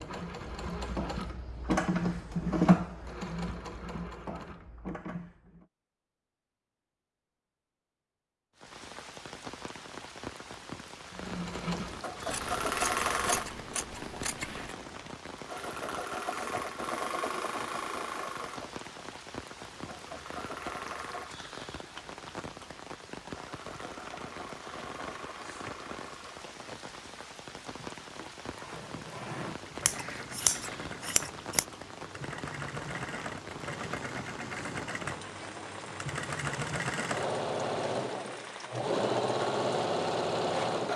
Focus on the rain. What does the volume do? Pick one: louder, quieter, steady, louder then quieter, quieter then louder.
steady.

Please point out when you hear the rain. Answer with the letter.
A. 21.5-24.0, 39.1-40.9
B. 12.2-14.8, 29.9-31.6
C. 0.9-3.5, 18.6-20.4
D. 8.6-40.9
D.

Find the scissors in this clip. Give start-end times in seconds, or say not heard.
12.2-14.8, 29.9-31.6.